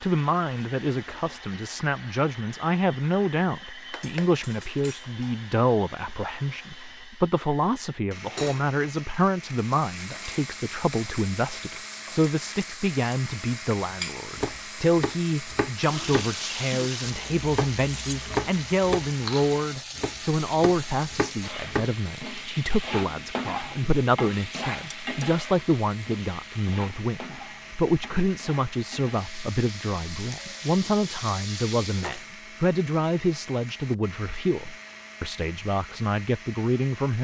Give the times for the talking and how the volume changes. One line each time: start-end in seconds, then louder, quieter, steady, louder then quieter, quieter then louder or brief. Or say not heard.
0.0-37.1 steady.